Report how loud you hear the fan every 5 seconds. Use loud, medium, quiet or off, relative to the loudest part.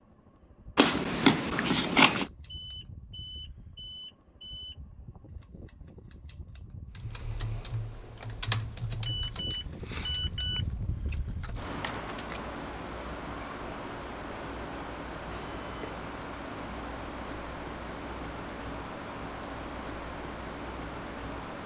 quiet, medium, loud, loud, loud.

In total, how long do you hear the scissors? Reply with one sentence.
You can hear the scissors for 3 seconds altogether.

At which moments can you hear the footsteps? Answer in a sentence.
The footsteps can't be heard in this clip.